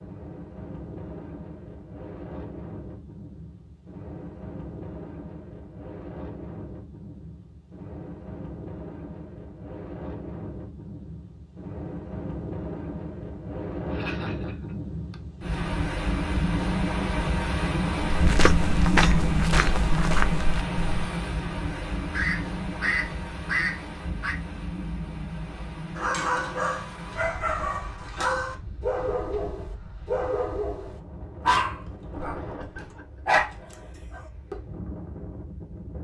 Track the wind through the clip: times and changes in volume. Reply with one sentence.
You can hear the wind from 0.0 to 35.9 s, getting louder then quieter.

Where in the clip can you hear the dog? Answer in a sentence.
The dog can be heard from 25.9 to 34.5 s.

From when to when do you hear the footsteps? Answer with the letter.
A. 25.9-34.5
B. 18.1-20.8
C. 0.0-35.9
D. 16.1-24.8
B.